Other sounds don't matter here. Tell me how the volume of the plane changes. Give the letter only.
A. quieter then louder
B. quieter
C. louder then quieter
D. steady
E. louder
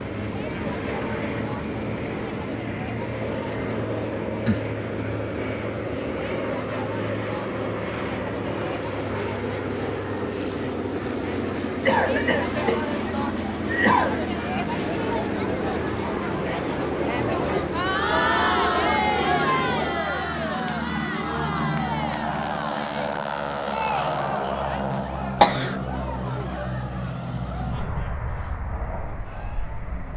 D.